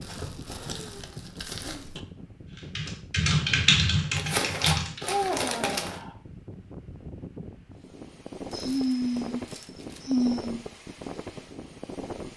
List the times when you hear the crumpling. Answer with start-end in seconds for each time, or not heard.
0.0-2.0, 4.2-6.0, 8.6-10.1.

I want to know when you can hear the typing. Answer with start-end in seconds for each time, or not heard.
2.5-5.0.